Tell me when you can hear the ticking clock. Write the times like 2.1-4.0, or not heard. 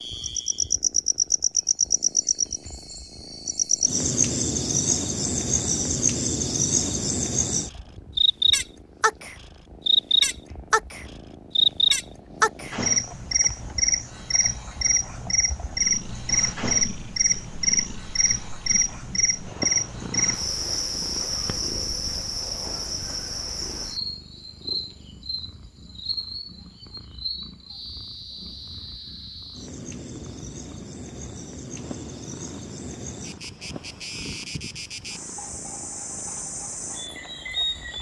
not heard.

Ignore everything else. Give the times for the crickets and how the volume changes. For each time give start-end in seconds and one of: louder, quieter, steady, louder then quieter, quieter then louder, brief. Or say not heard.
0.0-37.9 quieter.